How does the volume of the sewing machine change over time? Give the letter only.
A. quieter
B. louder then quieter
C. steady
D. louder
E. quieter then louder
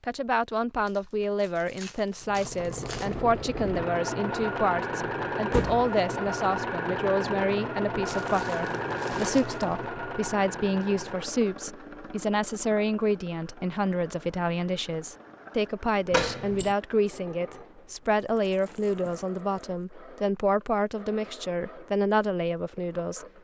A.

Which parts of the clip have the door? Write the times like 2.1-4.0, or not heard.
5.5-5.9, 16.1-16.8.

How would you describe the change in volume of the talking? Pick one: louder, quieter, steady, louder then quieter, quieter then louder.
steady.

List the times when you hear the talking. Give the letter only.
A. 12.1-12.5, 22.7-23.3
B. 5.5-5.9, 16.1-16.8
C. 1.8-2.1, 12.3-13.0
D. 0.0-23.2
D.